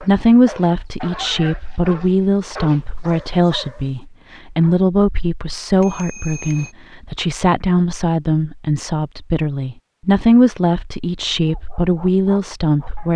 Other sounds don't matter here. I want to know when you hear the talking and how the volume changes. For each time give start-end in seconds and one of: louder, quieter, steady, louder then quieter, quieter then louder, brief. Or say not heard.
0.0-13.1 steady.